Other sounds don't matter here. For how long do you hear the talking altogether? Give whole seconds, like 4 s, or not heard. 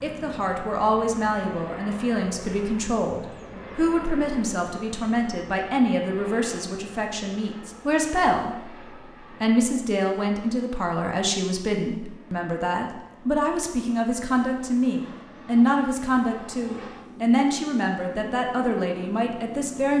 19 s.